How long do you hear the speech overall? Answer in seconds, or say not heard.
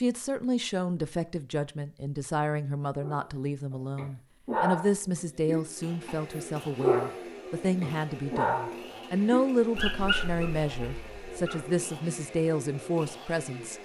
14 s.